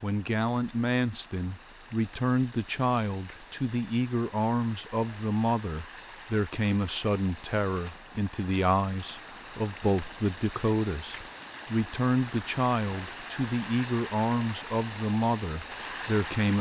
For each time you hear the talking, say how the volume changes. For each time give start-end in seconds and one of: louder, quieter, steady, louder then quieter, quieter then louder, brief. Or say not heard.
0.0-16.5 steady.